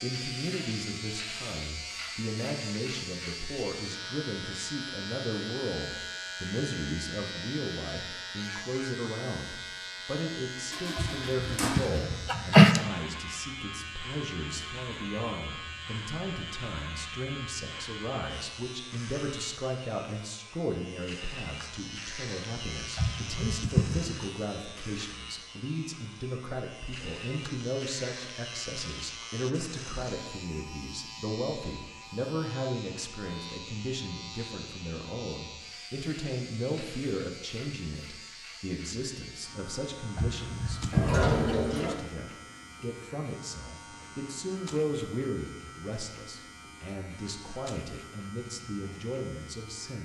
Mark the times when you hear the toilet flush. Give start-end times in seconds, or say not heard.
10.7-12.1, 40.9-42.0.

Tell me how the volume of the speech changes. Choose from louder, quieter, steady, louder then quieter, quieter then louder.
steady.